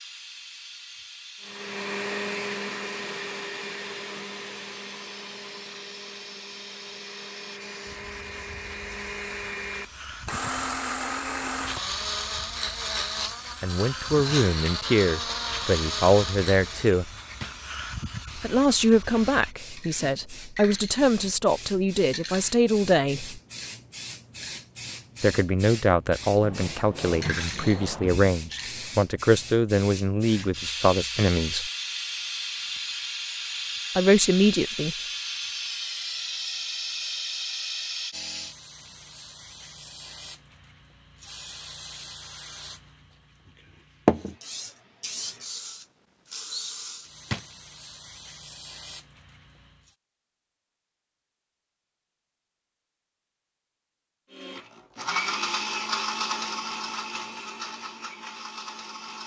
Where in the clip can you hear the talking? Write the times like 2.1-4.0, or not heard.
13.6-17.1, 18.4-23.4, 25.2-31.7, 34.0-35.0.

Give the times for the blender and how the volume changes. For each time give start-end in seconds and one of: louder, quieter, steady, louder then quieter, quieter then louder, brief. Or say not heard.
1.4-16.9 quieter then louder
54.3-59.2 quieter.